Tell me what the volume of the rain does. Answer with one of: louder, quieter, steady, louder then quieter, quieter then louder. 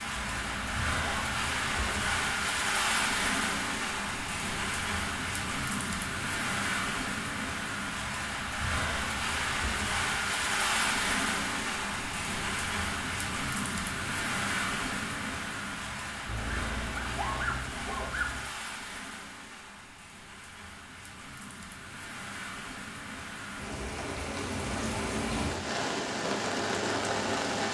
quieter then louder.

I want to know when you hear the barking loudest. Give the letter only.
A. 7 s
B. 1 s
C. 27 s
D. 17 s
D.